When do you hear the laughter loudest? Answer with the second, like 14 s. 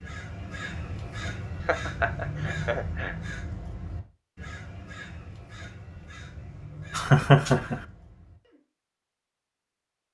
7 s.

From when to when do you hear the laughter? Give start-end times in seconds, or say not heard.
1.6-3.1, 6.9-7.8.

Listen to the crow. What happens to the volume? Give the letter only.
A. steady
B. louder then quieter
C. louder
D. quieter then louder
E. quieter
E.